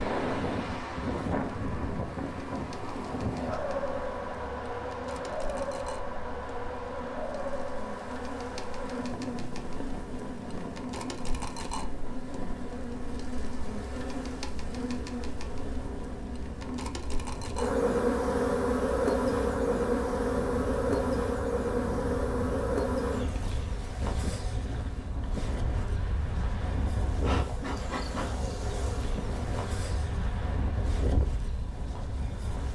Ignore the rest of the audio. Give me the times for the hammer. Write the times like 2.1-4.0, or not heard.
not heard.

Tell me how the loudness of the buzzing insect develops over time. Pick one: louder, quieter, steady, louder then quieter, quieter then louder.
louder then quieter.